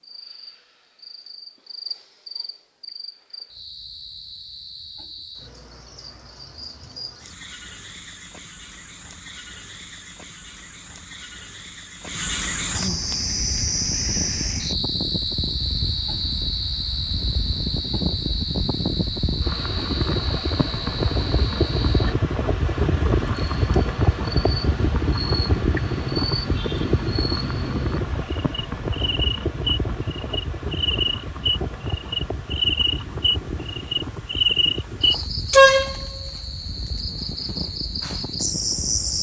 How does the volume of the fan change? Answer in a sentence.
The volume of the fan goes up, then down.